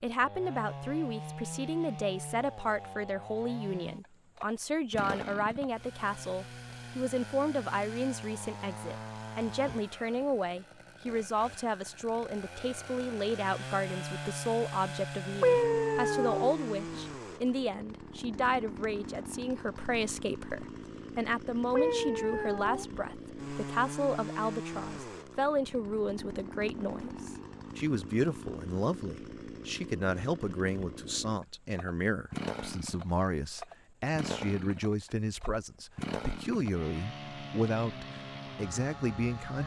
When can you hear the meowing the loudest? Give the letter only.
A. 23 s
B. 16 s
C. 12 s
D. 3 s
B.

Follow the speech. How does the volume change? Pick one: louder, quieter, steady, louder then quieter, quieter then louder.
steady.